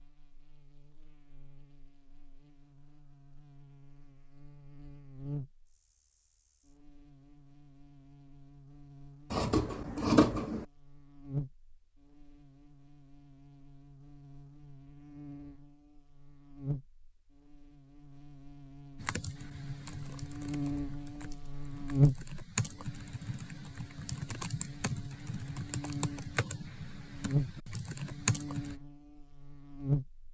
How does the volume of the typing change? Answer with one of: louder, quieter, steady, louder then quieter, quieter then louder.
louder.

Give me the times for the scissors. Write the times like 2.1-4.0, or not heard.
9.3-10.7.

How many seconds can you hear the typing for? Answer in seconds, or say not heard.
10 s.